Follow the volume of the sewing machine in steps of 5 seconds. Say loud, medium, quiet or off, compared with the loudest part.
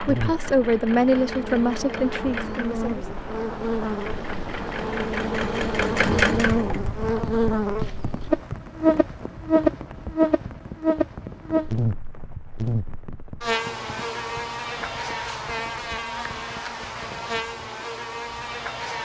medium, loud, off, off.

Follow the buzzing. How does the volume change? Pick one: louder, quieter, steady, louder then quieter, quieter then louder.
louder then quieter.